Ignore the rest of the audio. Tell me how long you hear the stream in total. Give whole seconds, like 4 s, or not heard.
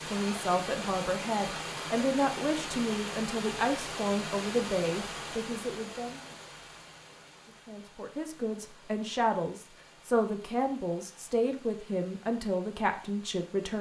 14 s.